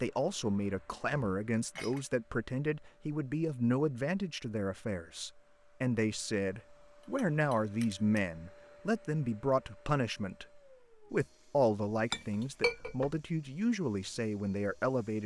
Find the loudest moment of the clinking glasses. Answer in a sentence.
The loudest moment of the clinking glasses is at 13 seconds.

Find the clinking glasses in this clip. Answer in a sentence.
You can hear the clinking glasses from 1.1 to 2.0 s, from 7.0 to 8.2 s and from 12.0 to 13.2 s.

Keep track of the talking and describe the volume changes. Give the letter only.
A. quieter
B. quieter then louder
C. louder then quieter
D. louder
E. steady
E.